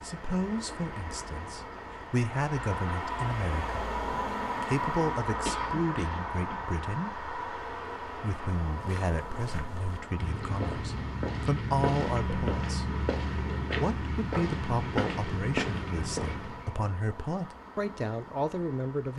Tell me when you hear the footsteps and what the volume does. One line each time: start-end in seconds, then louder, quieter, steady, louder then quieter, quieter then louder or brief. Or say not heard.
8.8-16.9 louder.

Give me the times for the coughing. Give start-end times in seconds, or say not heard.
5.5-6.6.